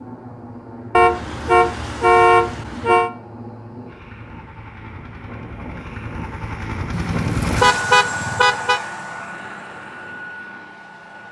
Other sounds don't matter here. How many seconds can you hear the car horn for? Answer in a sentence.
You can hear the car horn for 4 seconds altogether.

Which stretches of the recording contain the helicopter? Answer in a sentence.
You can hear the helicopter from 0.0 to 11.2 s.